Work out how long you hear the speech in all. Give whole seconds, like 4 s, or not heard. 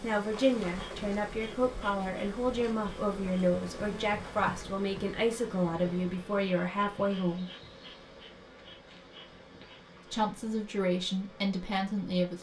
10 s.